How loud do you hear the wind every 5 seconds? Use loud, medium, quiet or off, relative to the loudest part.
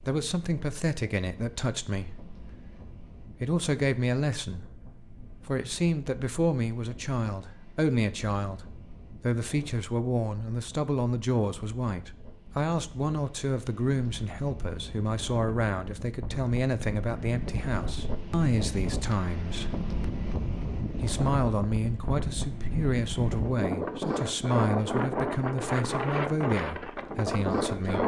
quiet, quiet, quiet, medium, loud, loud.